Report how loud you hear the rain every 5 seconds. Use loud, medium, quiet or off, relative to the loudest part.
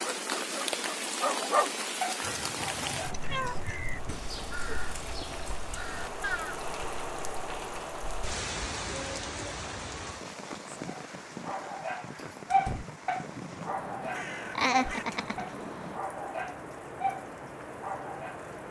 loud, loud, medium, medium.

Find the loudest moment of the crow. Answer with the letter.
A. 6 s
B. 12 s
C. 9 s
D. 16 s
A.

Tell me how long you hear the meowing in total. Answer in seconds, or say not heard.
2 s.